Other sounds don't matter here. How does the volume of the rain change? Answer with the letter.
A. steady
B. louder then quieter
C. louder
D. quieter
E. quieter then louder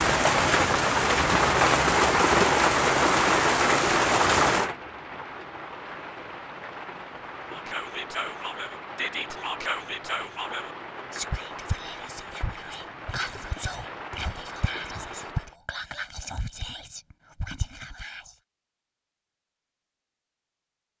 D.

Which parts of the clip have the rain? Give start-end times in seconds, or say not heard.
0.0-15.6.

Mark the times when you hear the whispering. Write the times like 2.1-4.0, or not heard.
7.5-18.4.